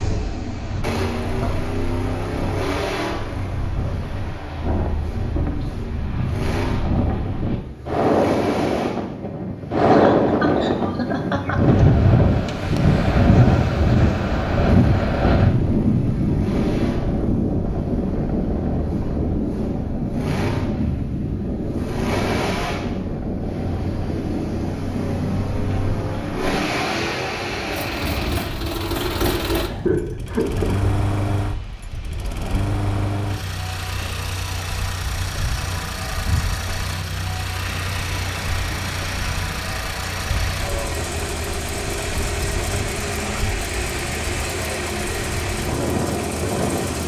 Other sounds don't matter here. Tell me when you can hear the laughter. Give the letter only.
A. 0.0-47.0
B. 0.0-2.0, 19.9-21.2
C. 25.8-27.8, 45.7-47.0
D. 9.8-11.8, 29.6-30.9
D.